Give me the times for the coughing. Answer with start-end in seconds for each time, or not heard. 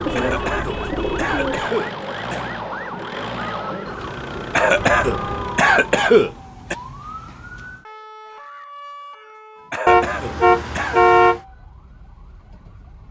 0.1-2.5, 4.5-6.8, 9.7-11.0.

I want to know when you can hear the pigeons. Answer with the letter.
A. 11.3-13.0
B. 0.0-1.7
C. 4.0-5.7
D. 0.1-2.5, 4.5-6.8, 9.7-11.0
B.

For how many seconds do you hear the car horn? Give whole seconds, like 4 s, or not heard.
4 s.